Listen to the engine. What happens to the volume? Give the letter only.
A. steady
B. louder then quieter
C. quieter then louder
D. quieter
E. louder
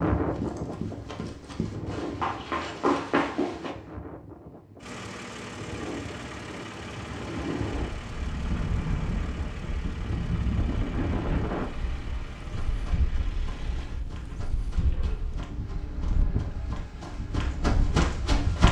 D.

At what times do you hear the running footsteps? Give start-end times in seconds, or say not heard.
0.0-3.7, 12.4-18.6.